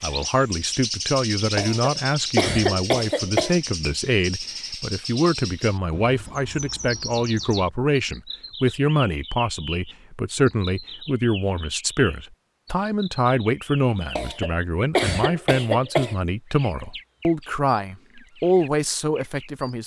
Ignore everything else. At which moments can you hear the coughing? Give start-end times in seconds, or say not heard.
1.6-3.5, 14.2-16.1.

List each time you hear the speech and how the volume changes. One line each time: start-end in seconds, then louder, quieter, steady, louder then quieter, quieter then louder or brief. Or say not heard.
0.0-19.8 steady.